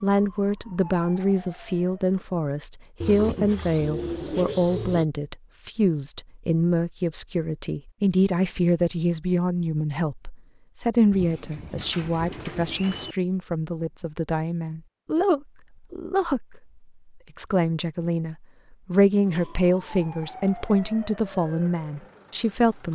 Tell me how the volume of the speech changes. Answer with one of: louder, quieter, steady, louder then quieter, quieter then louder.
steady.